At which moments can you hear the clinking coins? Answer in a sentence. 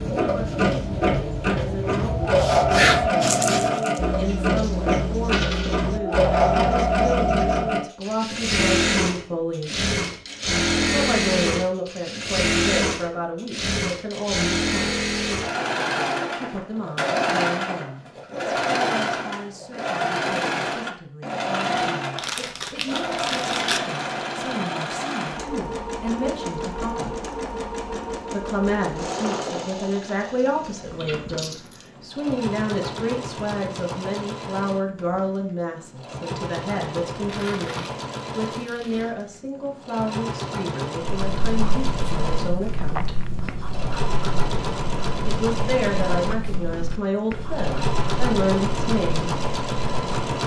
You can hear the clinking coins from 4.2 to 5.8 s and from 31.0 to 31.9 s.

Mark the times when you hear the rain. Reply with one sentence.
You can't hear the rain here.